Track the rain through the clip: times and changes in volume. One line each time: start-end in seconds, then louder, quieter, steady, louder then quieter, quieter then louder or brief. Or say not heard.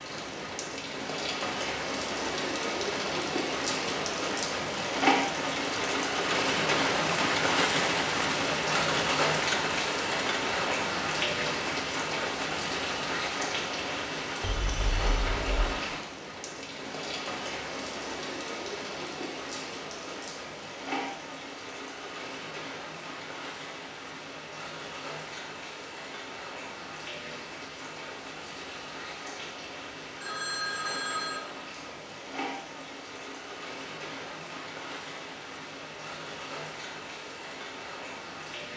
0.0-38.7 quieter.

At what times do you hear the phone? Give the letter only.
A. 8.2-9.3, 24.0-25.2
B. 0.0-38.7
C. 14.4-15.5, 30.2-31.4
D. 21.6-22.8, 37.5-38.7
C.